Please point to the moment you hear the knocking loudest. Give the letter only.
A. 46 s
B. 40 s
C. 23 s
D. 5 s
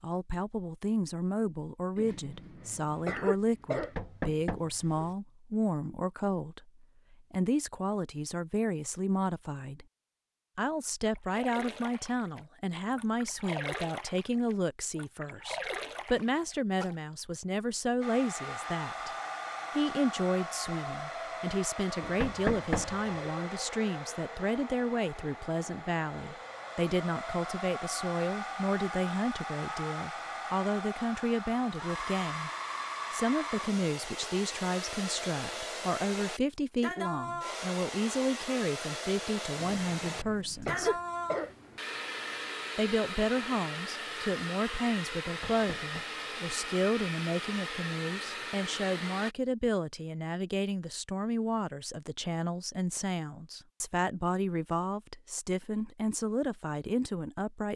C.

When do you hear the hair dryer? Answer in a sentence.
You can hear the hair dryer from 18.0 to 49.4 s.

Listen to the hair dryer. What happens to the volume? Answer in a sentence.
The loudness of the hair dryer stays about the same.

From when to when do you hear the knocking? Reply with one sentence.
You can hear the knocking from 3.8 to 5.2 s, from 22.0 to 23.1 s and from 45.2 to 46.0 s.